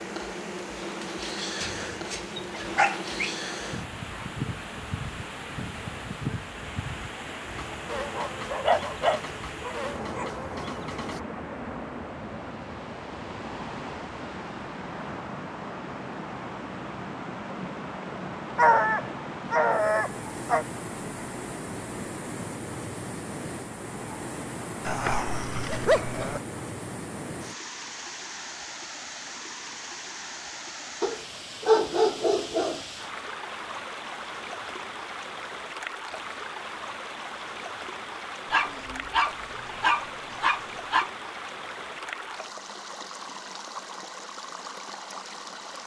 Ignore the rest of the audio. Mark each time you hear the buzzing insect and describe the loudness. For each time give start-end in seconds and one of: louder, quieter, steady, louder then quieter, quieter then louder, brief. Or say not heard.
0.0-11.2 steady.